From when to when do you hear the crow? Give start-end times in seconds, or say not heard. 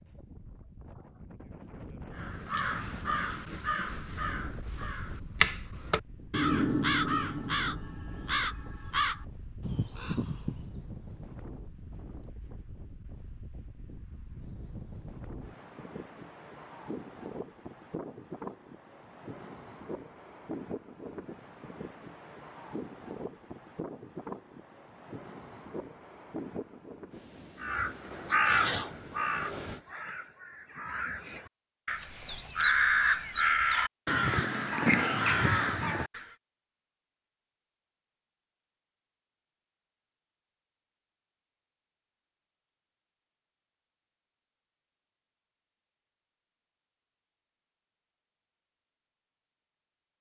2.1-10.8, 27.6-36.2.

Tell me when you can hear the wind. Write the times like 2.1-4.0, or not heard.
0.0-29.8.